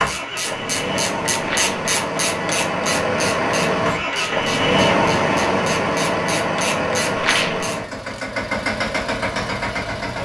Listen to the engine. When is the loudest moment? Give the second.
5 s.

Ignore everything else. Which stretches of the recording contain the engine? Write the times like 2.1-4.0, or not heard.
0.0-10.1.